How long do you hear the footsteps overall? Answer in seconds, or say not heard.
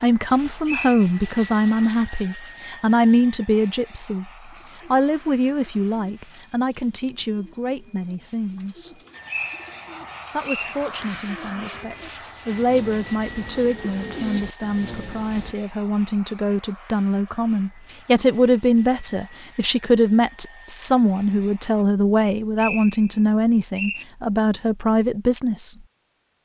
not heard.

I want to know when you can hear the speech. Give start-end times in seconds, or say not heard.
0.0-8.9, 10.3-25.8.